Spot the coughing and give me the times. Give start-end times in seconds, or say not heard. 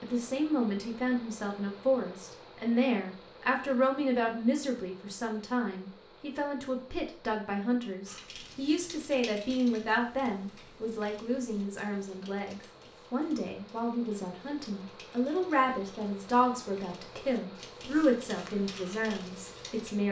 not heard.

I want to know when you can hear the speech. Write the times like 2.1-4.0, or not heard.
0.0-20.0.